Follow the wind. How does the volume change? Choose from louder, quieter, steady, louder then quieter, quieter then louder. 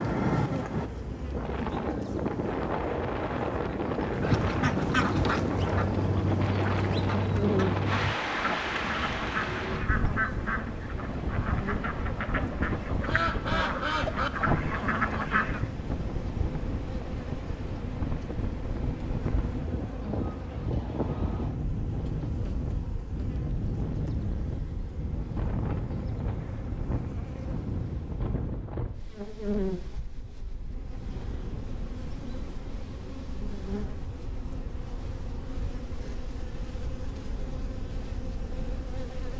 quieter.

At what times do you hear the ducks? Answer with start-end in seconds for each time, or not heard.
4.1-15.7.